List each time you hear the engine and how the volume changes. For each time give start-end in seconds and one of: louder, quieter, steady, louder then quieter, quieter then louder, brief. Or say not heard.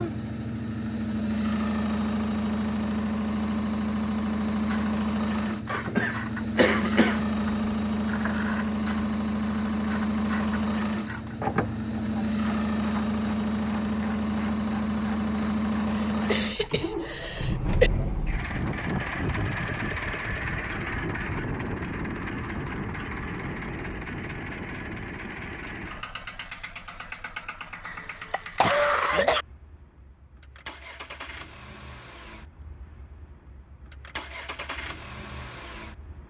0.0-36.2 quieter.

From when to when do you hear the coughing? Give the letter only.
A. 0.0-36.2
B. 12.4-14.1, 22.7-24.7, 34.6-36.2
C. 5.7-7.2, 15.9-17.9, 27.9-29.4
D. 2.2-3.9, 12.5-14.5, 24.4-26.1
C.